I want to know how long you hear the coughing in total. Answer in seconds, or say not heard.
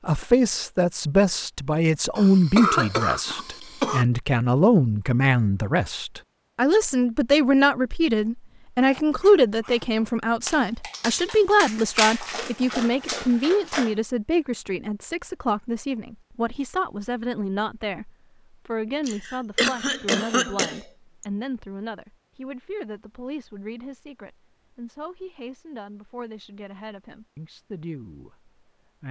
4 s.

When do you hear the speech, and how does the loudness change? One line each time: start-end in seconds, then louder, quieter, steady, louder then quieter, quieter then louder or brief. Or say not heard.
0.1-29.0 quieter.